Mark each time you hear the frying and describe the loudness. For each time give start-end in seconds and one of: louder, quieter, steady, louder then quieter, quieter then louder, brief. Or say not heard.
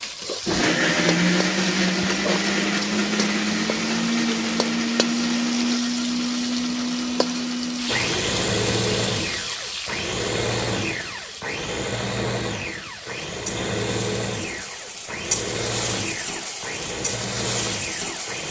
0.0-18.4 quieter then louder.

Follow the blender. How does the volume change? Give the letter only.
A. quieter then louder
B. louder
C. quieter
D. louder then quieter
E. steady
C.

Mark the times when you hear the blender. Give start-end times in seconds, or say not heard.
0.0-18.4.